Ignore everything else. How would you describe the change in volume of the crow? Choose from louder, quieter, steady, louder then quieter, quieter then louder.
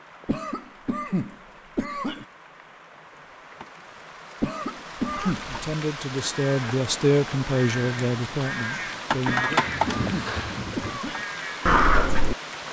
louder.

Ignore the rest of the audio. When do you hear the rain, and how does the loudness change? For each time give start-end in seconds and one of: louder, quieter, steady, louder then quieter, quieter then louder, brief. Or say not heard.
0.0-12.6 louder then quieter.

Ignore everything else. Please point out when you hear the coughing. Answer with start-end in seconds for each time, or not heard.
0.2-2.2, 4.4-5.5, 9.2-11.2.